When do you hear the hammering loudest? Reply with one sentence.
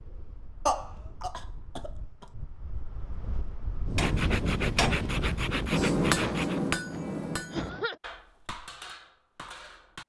The loudest moment of the hammering is at 6 seconds.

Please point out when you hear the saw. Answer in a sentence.
The saw can be heard from 4.0 to 6.6 s.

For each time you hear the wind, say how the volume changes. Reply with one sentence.
The wind can be heard from 0.0 to 5.9 s, getting louder.